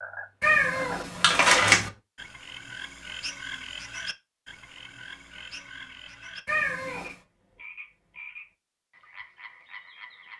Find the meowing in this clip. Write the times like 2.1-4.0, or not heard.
0.4-1.9, 6.5-7.2.